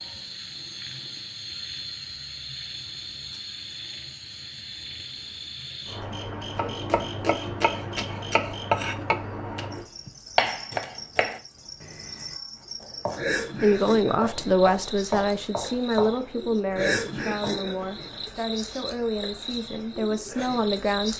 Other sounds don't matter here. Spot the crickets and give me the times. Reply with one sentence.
You can hear the crickets from 0.0 to 21.1 s.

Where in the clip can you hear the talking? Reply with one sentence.
You can hear the talking from 13.6 to 21.1 s.